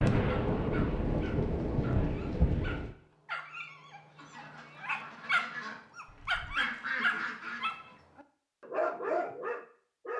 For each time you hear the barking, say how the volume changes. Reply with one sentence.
The barking can be heard from 0.2 to 10.1 s, getting louder.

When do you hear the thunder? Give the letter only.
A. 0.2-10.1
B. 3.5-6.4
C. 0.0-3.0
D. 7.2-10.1
C.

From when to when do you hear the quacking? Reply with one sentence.
You can hear the quacking from 4.2 to 8.0 s.